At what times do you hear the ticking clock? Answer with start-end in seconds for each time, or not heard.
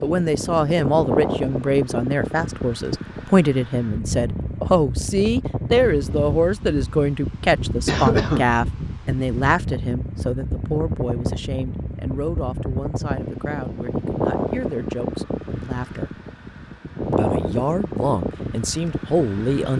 not heard.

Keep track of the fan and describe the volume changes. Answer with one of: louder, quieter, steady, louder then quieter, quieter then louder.
steady.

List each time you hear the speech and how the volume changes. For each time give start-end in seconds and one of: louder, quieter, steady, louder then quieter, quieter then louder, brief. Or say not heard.
0.0-16.1 quieter
17.1-19.7 brief.